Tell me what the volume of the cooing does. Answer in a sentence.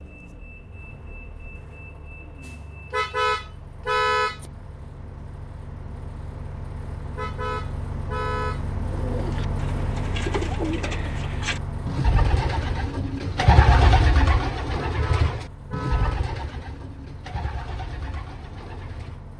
The loudness of the cooing goes up, then down.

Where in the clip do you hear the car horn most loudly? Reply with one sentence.
The loudest moment of the car horn is at 4 seconds.